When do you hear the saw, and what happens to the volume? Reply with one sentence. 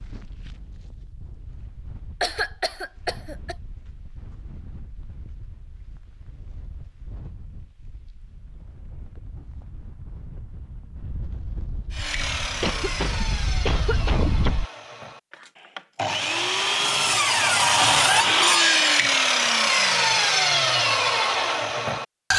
You can hear the saw from 11.9 to 22.3 s, getting louder.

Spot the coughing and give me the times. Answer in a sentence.
The coughing can be heard from 2.2 to 3.5 s and from 12.5 to 14.7 s.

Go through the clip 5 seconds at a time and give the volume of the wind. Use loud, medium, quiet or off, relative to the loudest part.
quiet, quiet, loud, off, off.